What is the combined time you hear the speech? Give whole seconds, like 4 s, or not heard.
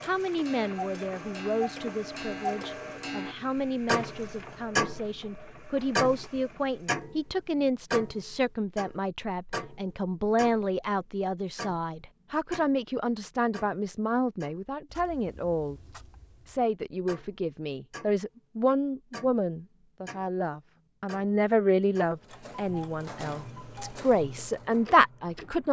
25 s.